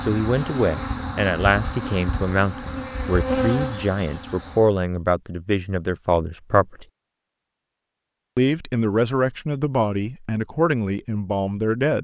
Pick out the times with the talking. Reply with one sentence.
You can hear the talking from 0.0 to 6.8 s and from 8.3 to 12.0 s.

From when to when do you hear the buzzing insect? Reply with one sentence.
The buzzing insect can be heard from 0.0 to 4.7 s.